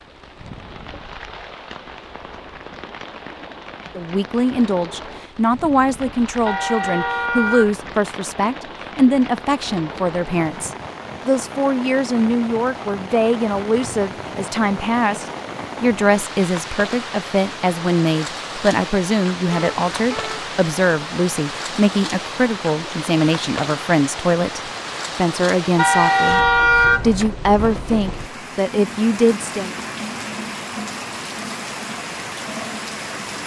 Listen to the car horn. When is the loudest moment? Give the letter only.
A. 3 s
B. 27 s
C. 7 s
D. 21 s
B.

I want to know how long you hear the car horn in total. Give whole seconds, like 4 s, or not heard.
4 s.